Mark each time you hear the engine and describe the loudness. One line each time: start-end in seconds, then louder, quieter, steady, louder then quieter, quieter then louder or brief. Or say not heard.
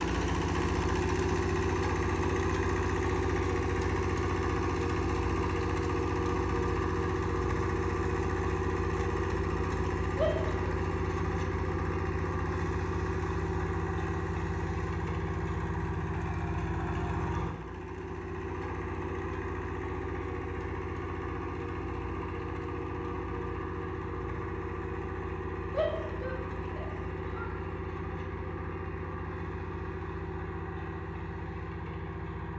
0.0-32.5 quieter.